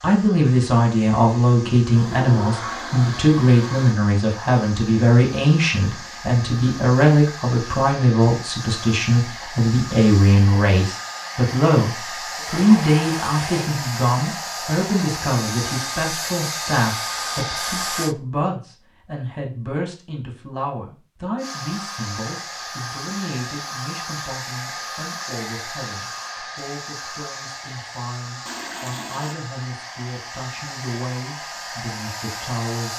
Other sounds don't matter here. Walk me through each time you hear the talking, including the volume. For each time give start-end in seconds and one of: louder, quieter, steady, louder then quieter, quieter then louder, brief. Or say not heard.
0.0-32.9 quieter.